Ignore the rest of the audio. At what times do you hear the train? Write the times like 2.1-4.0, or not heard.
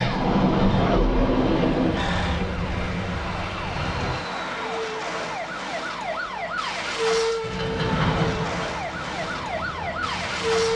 0.0-4.2, 7.4-10.7.